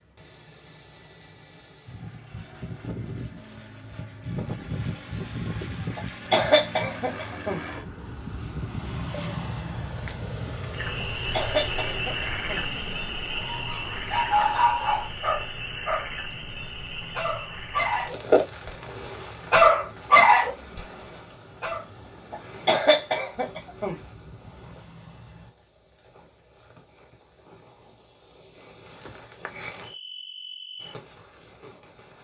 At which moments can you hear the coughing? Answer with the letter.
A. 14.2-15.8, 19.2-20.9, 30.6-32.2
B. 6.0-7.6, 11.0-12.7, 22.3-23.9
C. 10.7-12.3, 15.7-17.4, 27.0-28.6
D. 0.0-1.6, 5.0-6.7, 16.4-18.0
B.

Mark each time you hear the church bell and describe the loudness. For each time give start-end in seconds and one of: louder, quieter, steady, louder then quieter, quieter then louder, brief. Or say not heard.
not heard.